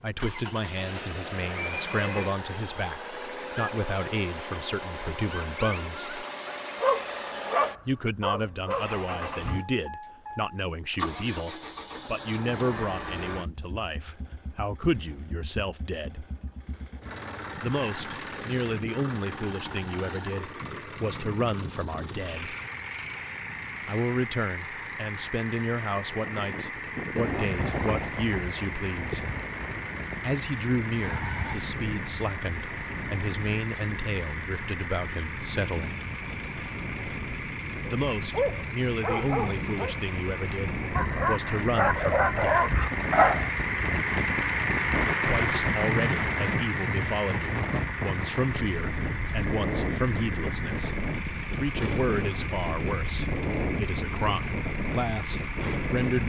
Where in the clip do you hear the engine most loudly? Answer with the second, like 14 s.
45 s.